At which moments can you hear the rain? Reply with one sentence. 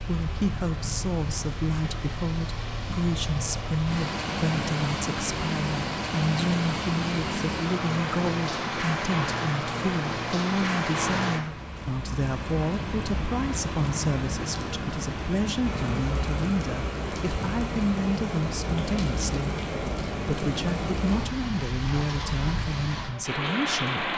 The rain can be heard from 0.0 to 24.1 s.